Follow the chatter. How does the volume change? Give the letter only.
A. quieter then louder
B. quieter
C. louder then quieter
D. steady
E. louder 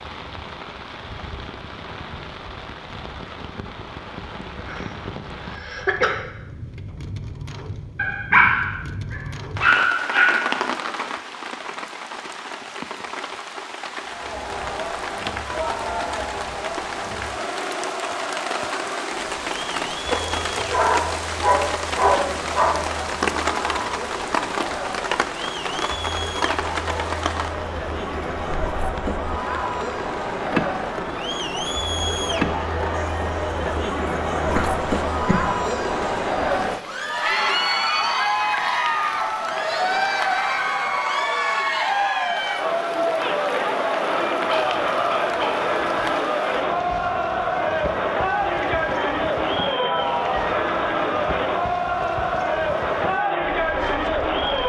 E.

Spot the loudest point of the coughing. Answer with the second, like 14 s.
6 s.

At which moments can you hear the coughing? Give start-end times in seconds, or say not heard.
4.4-6.2, 34.5-35.5.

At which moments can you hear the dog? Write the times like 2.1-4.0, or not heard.
8.0-10.4, 20.1-22.7, 44.5-46.1.